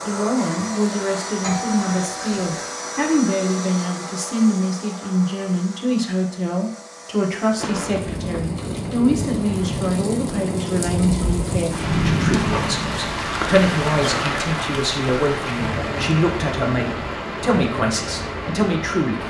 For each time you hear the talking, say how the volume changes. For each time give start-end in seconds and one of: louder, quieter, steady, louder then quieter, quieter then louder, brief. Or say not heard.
0.1-19.2 steady.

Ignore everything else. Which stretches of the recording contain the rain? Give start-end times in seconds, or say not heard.
7.5-19.2.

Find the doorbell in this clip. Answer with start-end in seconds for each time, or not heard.
1.4-2.6.